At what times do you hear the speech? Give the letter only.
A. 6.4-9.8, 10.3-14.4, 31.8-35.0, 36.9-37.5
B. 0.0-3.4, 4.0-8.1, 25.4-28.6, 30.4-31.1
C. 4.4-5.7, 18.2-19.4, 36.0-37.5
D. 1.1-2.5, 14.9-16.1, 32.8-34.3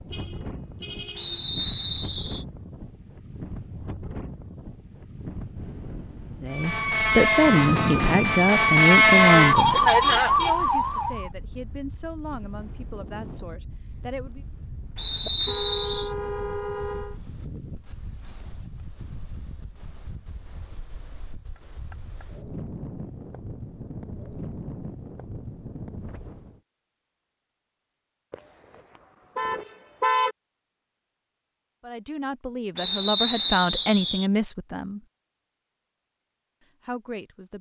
A.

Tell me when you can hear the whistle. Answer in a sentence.
The whistle can be heard from 1.1 to 2.5 s, from 14.9 to 16.1 s and from 32.8 to 34.3 s.